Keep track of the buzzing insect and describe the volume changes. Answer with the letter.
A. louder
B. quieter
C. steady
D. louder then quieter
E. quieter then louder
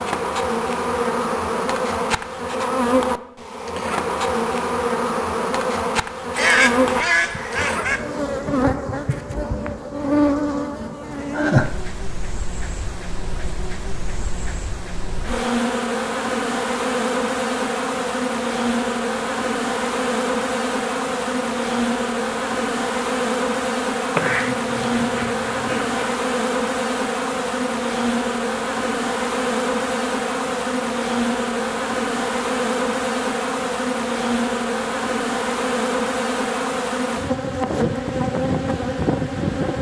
C.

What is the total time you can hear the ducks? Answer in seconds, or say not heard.
4 s.